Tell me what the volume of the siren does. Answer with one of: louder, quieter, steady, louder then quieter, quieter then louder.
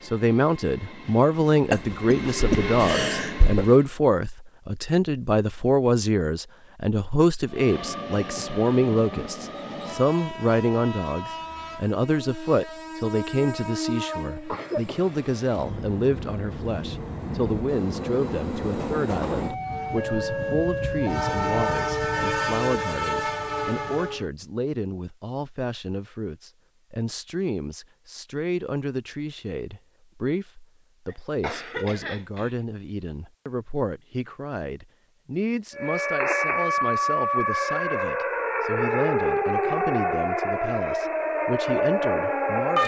steady.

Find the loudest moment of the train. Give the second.
22 s.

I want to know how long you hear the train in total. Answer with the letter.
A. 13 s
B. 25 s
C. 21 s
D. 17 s
C.